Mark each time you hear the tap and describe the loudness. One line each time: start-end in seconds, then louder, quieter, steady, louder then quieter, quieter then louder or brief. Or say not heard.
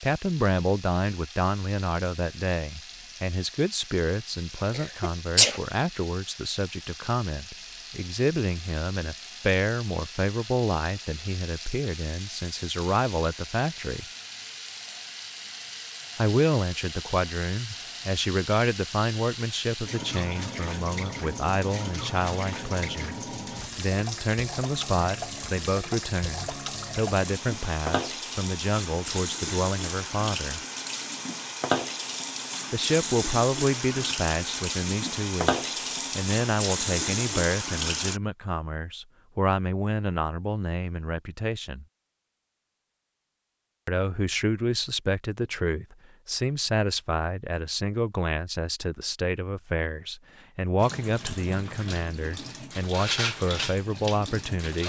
0.0-38.2 louder
50.8-54.8 louder then quieter.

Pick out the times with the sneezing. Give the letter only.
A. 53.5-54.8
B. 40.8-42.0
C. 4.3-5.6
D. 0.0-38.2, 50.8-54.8
C.